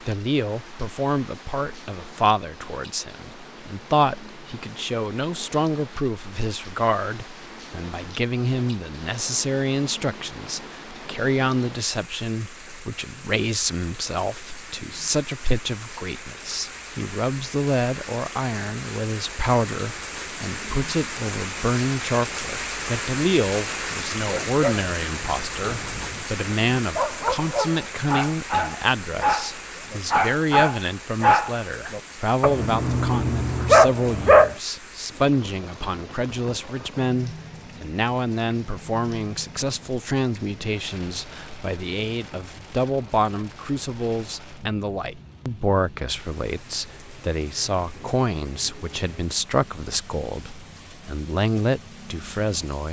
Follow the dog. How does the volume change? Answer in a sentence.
The volume of the dog goes up.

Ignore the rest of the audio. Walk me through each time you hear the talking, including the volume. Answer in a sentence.
You can hear the talking from 0.1 to 52.8 s, at a steady volume.